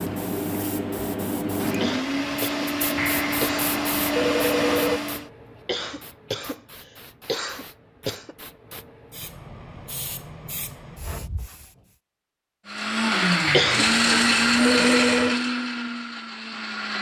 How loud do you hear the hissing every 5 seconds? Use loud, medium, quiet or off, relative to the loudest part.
loud, quiet, medium, off.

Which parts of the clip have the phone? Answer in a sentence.
The phone can be heard from 3.0 to 5.0 s and from 13.4 to 15.4 s.